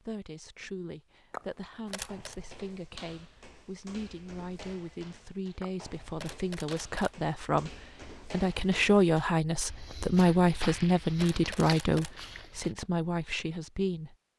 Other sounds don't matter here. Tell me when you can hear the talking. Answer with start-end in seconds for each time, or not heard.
0.0-14.2.